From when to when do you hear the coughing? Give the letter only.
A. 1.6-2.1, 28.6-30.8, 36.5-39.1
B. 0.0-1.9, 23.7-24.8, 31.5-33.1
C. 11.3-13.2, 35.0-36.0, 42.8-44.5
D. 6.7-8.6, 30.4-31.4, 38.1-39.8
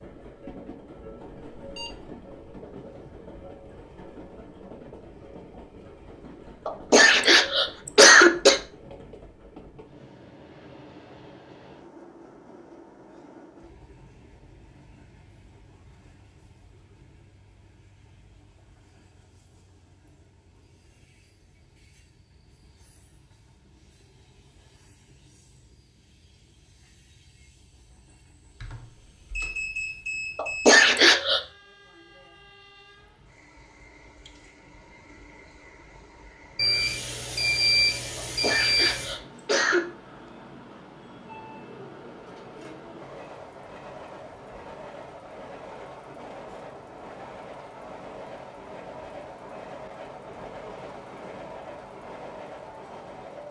D.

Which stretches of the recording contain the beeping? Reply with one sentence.
The beeping can be heard from 1.6 to 2.1 s, from 28.6 to 30.8 s and from 36.5 to 39.1 s.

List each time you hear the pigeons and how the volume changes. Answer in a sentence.
The pigeons can't be heard in this clip.